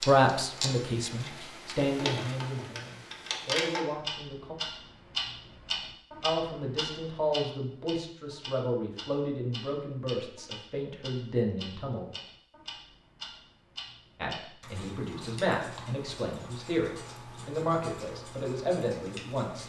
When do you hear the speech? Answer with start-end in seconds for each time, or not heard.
0.0-4.5, 6.2-12.1, 14.2-19.6.